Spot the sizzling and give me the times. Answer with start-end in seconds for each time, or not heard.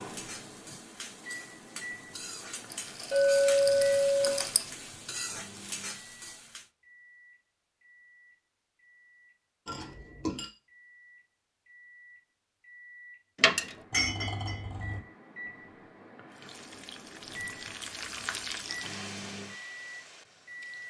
0.0-6.7, 16.3-20.8.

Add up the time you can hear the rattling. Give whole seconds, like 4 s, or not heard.
2 s.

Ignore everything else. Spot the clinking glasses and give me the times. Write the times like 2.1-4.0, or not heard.
3.1-4.5, 9.7-10.5, 13.9-15.0.